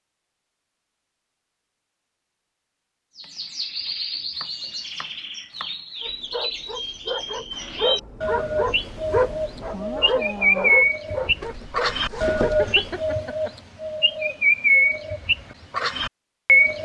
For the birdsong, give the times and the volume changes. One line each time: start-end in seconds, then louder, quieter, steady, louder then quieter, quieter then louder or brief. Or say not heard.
3.1-16.8 louder.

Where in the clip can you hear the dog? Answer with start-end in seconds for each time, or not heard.
6.0-12.3.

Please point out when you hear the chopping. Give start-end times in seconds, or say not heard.
3.2-5.8, 11.4-12.9.